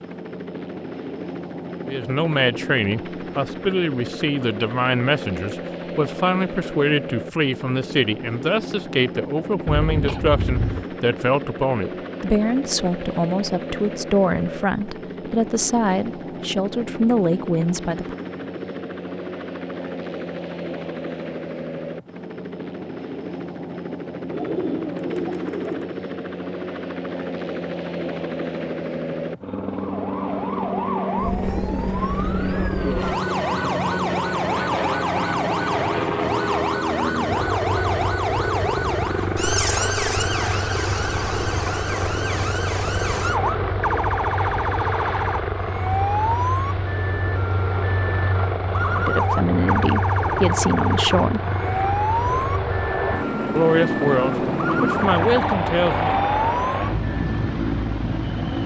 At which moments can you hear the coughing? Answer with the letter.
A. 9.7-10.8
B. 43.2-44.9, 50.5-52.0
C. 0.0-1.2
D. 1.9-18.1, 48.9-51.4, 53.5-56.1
A.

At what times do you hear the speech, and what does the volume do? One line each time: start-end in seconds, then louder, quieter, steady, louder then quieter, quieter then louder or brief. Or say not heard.
1.9-18.1 steady
48.9-51.4 brief
53.5-56.1 brief.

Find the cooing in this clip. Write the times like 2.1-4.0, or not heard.
24.3-25.9, 31.6-33.1.